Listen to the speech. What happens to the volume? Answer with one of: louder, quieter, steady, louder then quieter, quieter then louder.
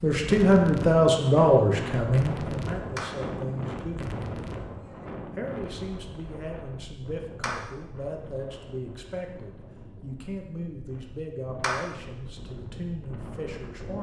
quieter.